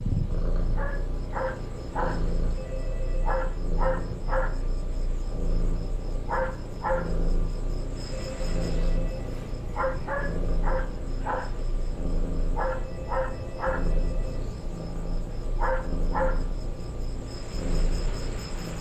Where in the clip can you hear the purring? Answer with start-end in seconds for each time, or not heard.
0.0-18.7.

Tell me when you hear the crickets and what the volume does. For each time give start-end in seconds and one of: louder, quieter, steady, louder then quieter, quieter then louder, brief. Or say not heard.
0.0-18.7 steady.